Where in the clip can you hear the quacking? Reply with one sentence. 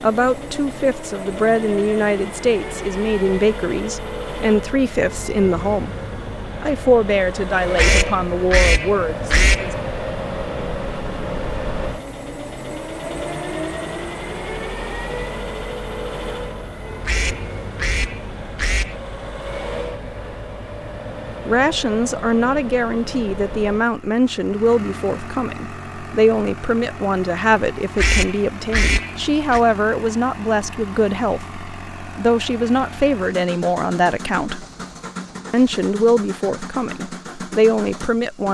You can hear the quacking from 7.8 to 9.8 s, from 17.1 to 18.9 s and from 27.9 to 29.6 s.